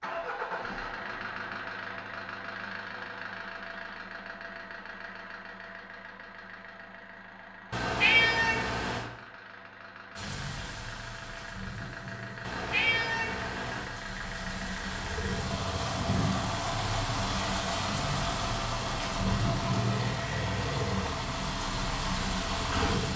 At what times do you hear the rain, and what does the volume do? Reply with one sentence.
You can hear the rain from 10.2 to 23.1 s, getting louder.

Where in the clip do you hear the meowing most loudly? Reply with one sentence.
The volume of the meowing peaks at 8 seconds.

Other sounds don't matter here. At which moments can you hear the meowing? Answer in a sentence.
The meowing can be heard from 7.7 to 9.1 s and from 12.4 to 13.9 s.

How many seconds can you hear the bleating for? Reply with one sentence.
The bleating can't be heard in this clip.